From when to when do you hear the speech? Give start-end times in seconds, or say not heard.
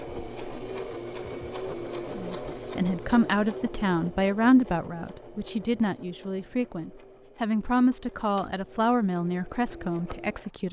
2.1-10.6.